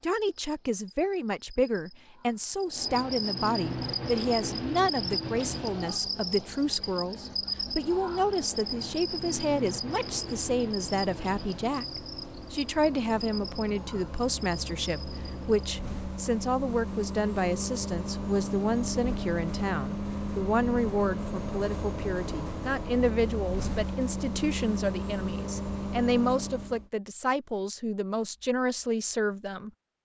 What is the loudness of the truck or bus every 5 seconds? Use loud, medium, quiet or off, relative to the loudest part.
off, quiet, medium, loud, loud, loud.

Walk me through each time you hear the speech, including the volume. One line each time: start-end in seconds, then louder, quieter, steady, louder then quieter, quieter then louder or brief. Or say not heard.
0.0-29.7 steady.